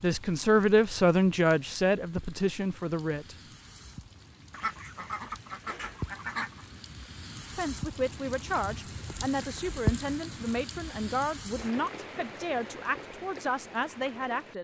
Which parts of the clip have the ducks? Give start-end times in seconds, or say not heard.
4.5-6.7.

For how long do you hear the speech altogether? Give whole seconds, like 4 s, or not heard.
10 s.